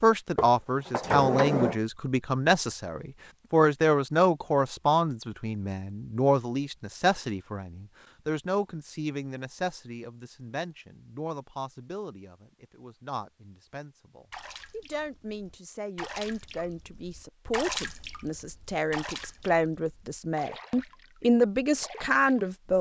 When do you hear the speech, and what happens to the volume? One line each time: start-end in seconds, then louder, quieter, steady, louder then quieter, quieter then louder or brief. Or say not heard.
0.0-22.7 quieter then louder.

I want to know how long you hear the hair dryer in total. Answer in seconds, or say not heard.
not heard.